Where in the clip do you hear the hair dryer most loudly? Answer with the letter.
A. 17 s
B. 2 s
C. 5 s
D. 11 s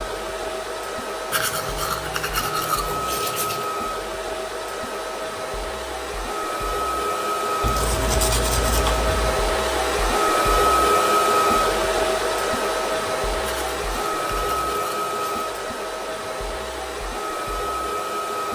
D.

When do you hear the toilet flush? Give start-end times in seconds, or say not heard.
not heard.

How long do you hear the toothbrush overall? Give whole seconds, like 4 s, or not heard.
6 s.